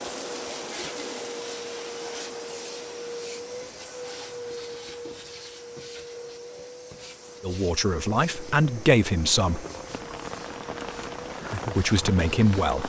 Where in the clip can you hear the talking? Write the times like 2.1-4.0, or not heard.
7.4-9.7, 11.8-12.8.